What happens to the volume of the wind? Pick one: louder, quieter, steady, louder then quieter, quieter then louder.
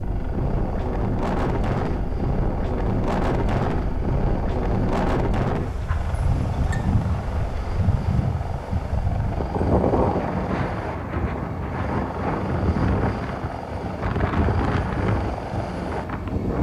steady.